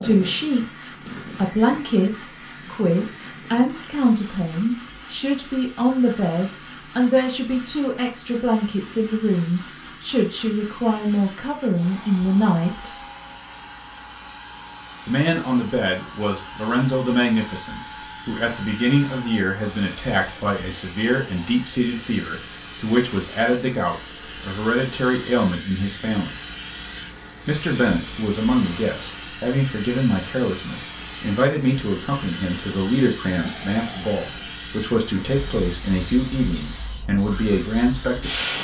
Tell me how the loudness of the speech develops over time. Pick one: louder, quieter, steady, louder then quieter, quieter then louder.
steady.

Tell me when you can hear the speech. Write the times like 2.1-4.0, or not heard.
0.0-12.9, 15.1-26.4, 27.4-38.5.